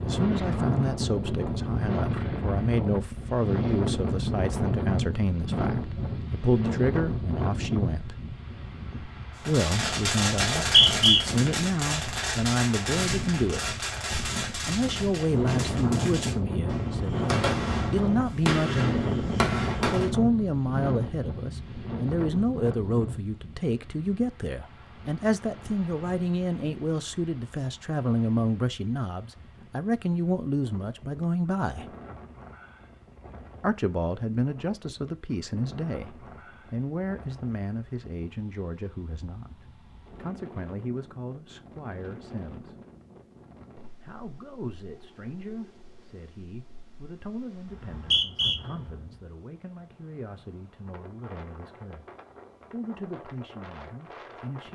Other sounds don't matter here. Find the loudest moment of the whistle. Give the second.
11 s.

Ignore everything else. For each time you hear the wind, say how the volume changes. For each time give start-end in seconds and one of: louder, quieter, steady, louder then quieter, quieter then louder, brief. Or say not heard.
0.0-54.7 quieter.